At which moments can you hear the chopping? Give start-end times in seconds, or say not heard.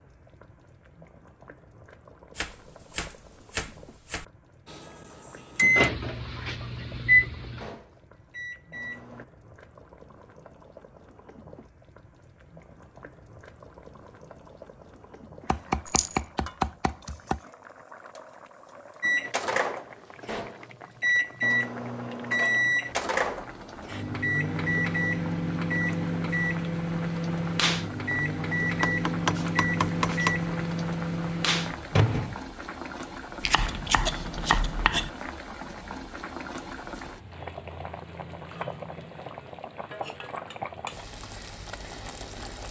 2.4-4.2, 15.4-17.4, 28.8-30.4, 33.4-35.1.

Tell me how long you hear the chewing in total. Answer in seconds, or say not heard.
not heard.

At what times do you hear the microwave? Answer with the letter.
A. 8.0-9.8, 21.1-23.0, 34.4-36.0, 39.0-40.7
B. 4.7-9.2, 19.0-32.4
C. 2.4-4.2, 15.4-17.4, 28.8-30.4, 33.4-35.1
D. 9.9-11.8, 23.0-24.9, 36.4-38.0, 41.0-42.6
B.